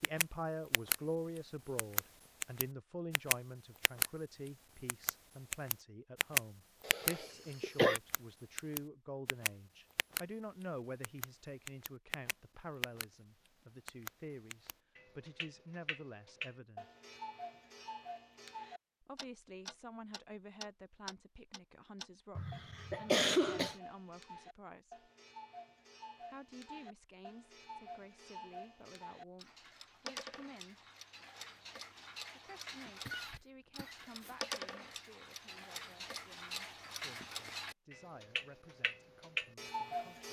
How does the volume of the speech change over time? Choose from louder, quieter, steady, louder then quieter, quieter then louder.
quieter.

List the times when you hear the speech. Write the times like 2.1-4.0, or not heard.
0.0-16.9, 19.0-25.1, 26.2-30.8, 32.4-40.2.